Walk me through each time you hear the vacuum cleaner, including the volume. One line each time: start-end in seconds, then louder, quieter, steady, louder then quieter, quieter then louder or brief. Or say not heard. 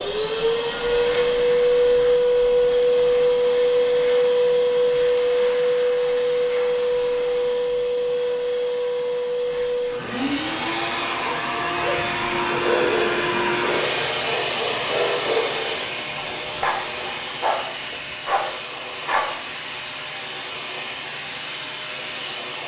0.0-22.6 quieter.